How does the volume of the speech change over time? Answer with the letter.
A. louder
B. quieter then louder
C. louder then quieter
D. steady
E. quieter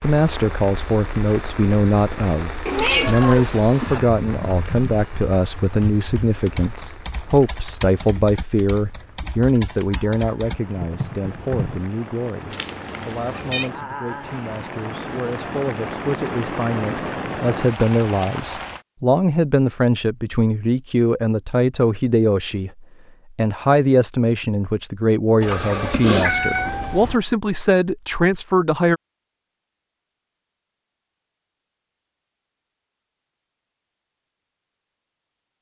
B.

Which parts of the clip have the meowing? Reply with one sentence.
The meowing can be heard from 2.6 to 4.0 s, from 12.5 to 13.7 s and from 25.4 to 27.2 s.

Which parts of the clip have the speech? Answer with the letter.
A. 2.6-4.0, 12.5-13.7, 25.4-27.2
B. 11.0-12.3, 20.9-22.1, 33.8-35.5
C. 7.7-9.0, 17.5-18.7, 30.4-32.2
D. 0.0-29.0
D.